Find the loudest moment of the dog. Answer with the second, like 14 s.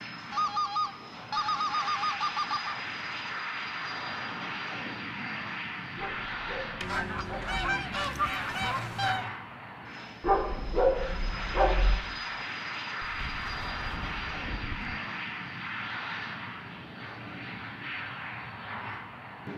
11 s.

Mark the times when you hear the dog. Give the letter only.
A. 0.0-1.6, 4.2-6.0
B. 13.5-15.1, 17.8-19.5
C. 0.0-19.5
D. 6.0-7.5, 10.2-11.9
D.